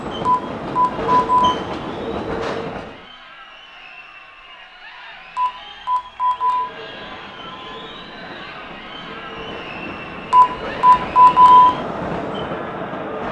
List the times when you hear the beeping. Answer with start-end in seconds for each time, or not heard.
0.2-1.6, 5.3-6.7, 10.3-11.8.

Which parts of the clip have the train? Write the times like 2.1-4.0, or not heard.
0.0-3.1, 6.3-13.2.